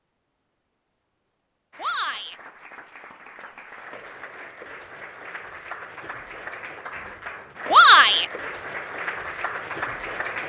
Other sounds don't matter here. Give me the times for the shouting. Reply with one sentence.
The shouting can be heard from 1.8 to 2.4 s and from 7.7 to 8.2 s.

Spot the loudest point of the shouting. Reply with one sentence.
The loudest moment of the shouting is at 8 seconds.